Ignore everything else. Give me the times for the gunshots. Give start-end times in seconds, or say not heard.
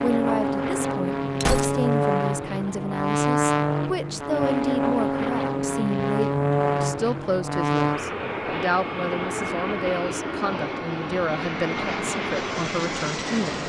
1.4-2.0.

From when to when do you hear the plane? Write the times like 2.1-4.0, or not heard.
0.0-13.6.